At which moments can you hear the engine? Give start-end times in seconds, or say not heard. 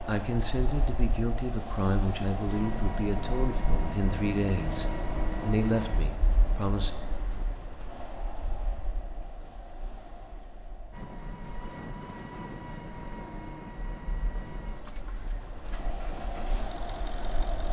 2.5-6.0, 10.9-17.6.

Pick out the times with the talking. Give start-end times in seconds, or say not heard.
0.1-6.9.